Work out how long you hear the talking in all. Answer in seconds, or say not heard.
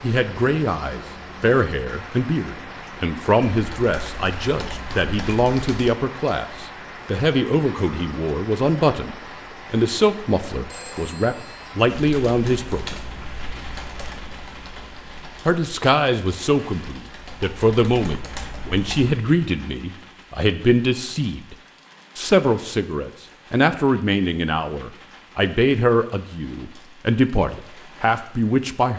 26 s.